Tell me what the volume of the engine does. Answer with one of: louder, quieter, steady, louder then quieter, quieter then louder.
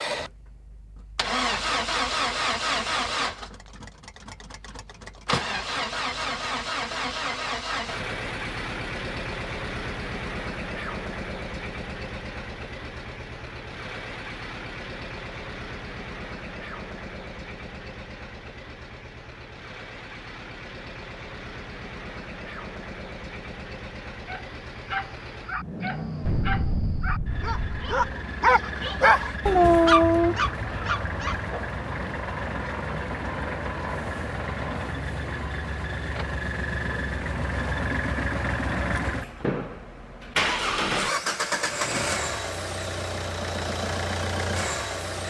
quieter then louder.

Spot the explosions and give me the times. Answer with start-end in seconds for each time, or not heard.
26.2-27.9.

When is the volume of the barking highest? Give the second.
30 s.